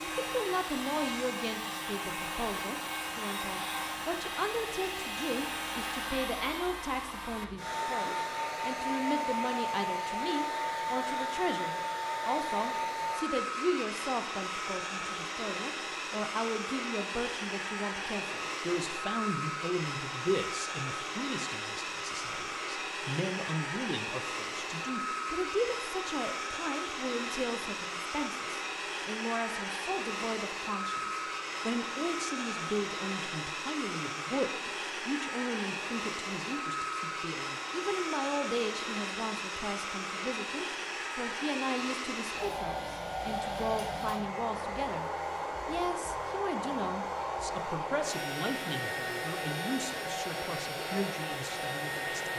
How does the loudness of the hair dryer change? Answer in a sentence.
The volume of the hair dryer stays about the same.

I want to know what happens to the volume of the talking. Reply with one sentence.
The volume of the talking stays about the same.